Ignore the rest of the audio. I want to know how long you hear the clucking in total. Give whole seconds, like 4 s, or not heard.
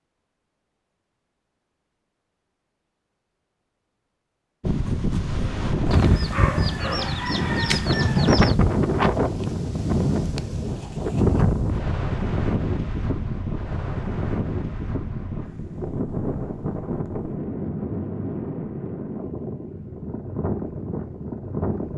3 s.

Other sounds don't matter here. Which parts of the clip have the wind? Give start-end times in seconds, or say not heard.
4.6-21.9.